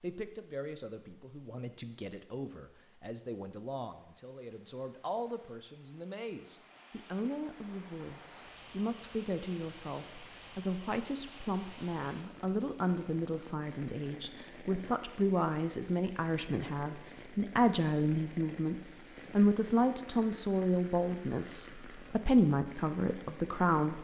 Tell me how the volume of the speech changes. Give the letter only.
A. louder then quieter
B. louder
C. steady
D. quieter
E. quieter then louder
B.